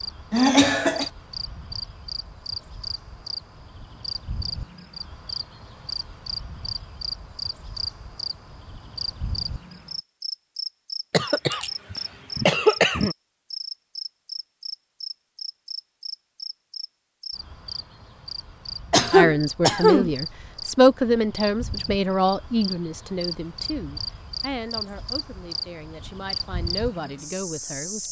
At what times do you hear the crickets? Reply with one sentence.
You can hear the crickets from 0.0 to 28.0 s.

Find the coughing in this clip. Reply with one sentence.
The coughing can be heard from 0.3 to 1.1 s, from 11.1 to 13.2 s and from 18.9 to 20.1 s.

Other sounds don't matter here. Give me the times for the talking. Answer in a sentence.
The talking can be heard from 19.1 to 28.0 s.